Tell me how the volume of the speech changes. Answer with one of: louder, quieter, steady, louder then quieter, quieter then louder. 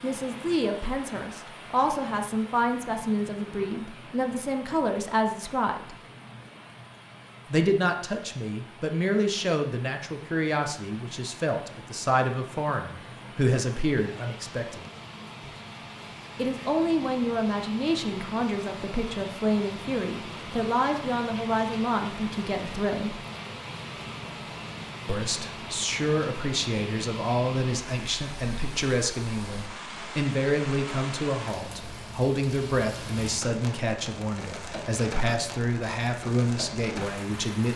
steady.